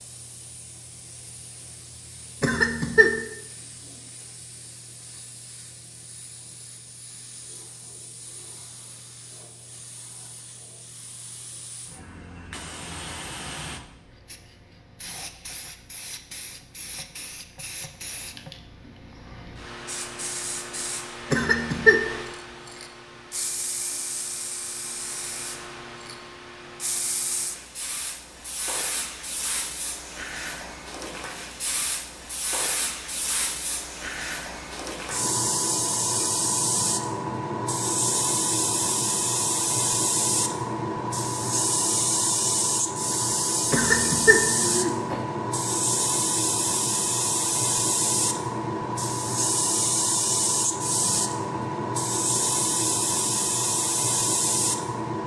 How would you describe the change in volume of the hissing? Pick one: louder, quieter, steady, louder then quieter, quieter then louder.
louder.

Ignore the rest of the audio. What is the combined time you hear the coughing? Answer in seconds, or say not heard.
3 s.